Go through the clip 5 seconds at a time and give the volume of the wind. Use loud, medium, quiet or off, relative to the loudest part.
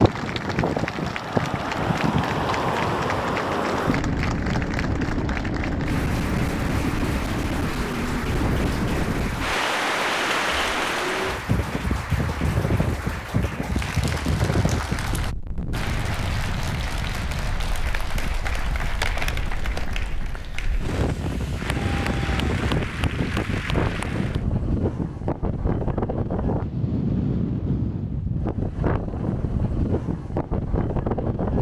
loud, loud, loud, medium, loud, loud, loud.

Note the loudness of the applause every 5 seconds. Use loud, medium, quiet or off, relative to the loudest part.
loud, loud, loud, loud, loud, off, off.